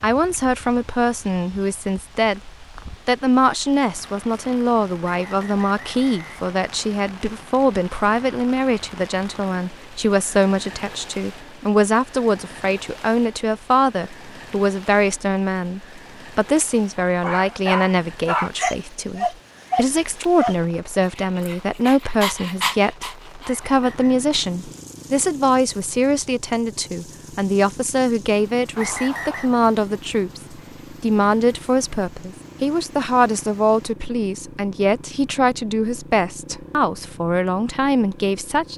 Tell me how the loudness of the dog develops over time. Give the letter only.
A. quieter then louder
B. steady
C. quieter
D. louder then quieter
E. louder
A.